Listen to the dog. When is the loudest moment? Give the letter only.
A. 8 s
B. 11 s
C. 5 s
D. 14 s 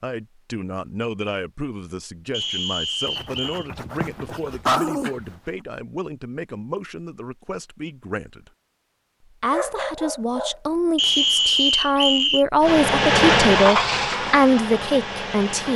C.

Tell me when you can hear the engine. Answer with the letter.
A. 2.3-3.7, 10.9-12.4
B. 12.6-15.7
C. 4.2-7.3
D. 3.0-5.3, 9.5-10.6
B.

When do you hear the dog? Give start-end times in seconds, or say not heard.
3.0-5.3, 9.5-10.6.